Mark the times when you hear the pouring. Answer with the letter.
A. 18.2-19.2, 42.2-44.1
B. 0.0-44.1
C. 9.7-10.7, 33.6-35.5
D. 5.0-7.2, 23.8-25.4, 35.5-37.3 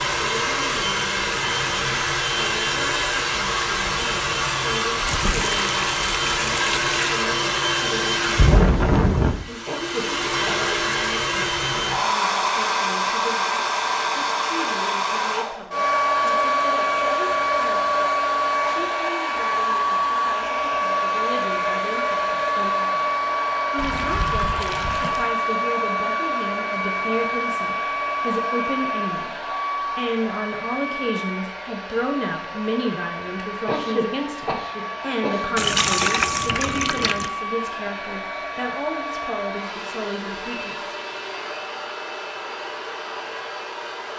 D.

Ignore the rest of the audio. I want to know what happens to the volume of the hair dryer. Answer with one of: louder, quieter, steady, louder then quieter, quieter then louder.
quieter.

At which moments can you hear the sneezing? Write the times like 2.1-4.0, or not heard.
9.7-10.7, 33.6-35.5.